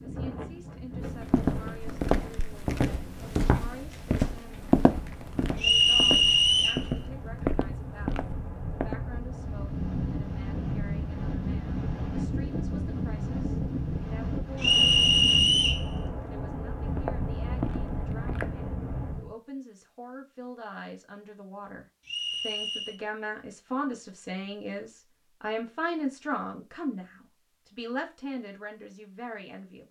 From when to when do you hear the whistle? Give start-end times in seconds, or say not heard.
5.6-6.8, 14.6-15.8, 22.1-23.0.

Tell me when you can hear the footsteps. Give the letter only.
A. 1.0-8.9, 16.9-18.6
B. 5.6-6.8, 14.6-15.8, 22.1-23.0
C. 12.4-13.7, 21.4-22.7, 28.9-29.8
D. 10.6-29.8
A.